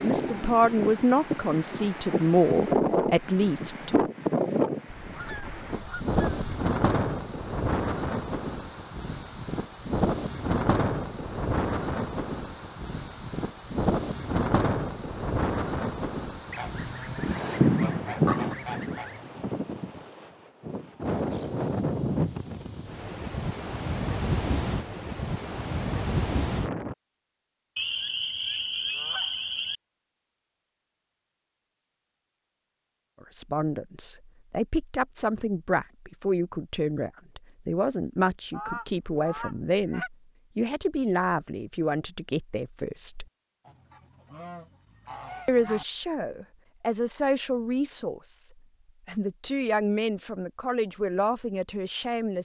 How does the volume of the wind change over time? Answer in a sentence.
The loudness of the wind stays about the same.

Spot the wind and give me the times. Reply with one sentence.
The wind can be heard from 0.0 to 26.9 s.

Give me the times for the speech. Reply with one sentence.
The speech can be heard from 0.0 to 3.9 s, from 33.2 to 43.2 s and from 45.5 to 52.4 s.